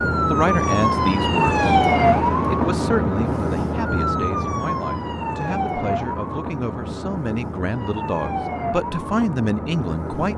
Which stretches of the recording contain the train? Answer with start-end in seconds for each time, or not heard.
not heard.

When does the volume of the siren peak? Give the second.
2 s.